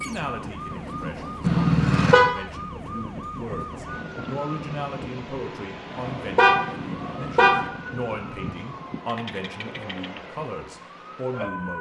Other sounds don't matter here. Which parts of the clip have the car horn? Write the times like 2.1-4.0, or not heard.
1.4-2.2, 6.2-7.5.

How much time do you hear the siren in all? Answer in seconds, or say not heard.
12 s.